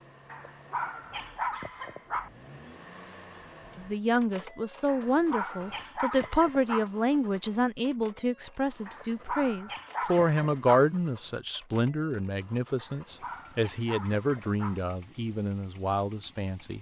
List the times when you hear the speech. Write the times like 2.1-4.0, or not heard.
3.8-16.7.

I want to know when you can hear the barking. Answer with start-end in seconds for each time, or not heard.
0.3-2.3, 4.8-6.9, 8.8-10.8, 12.8-14.8.